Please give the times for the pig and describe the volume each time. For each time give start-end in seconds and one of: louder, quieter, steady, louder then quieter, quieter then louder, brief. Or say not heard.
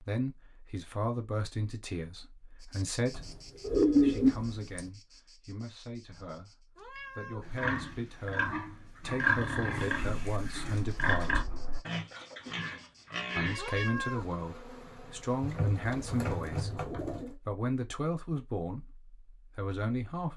7.4-13.8 louder then quieter.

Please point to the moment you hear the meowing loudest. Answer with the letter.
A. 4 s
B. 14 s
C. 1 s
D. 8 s
B.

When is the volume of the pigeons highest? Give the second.
4 s.